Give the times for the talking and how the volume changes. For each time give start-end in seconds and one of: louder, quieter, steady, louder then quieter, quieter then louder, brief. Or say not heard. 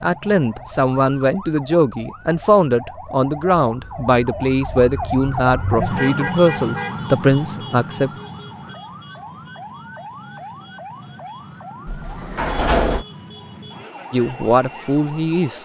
0.0-8.1 steady
14.1-15.6 brief.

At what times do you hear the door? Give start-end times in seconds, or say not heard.
11.8-13.1.